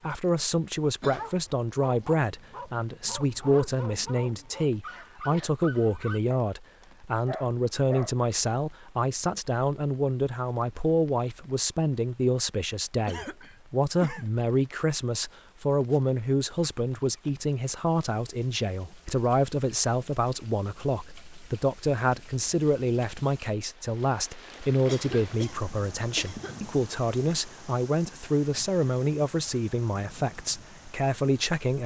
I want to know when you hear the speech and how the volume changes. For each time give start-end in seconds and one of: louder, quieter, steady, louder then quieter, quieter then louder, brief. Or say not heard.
0.0-31.8 steady.